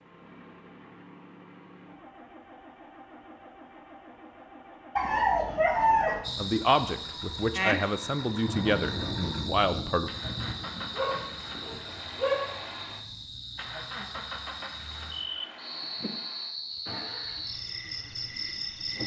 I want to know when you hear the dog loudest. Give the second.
6 s.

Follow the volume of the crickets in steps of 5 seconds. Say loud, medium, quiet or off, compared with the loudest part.
off, loud, medium, loud.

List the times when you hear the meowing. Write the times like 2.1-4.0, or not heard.
not heard.